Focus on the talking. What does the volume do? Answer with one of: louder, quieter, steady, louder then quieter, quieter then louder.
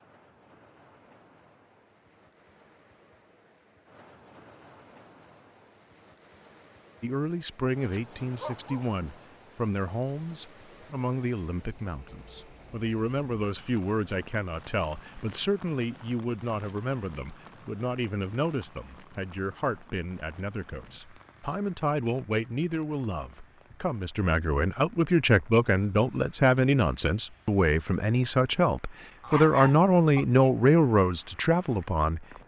louder.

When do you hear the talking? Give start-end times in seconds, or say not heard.
7.0-32.2.